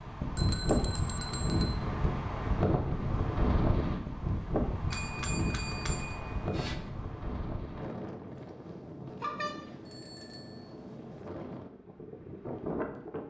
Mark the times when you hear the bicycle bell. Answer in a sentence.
The bicycle bell can be heard from 0.3 to 1.8 s, from 4.9 to 6.9 s and from 9.2 to 10.7 s.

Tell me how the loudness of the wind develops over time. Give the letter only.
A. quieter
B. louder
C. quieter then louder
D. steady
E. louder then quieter
A.